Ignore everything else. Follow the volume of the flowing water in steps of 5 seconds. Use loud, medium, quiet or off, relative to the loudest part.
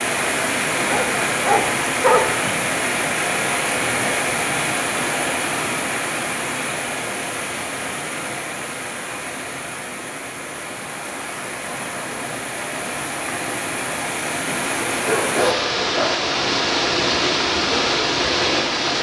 loud, medium, medium, loud.